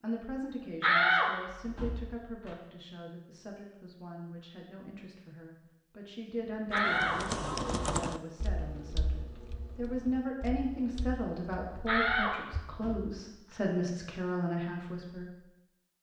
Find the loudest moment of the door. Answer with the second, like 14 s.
1 s.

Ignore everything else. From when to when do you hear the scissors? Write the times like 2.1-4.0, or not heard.
not heard.